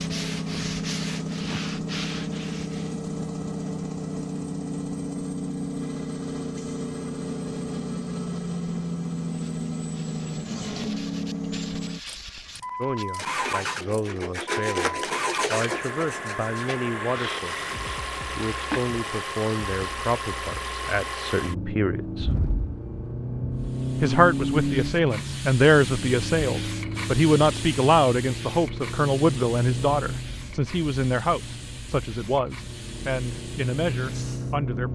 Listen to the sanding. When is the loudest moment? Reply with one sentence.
The volume of the sanding peaks at 15 seconds.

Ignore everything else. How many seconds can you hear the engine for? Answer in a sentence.
You can hear the engine for 35 seconds altogether.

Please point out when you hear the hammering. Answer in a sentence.
You can't hear the hammering here.